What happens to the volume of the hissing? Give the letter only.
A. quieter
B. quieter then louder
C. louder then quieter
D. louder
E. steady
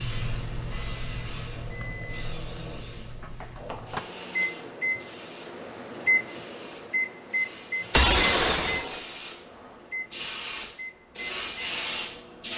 B.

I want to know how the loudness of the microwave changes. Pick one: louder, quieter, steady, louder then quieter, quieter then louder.
louder then quieter.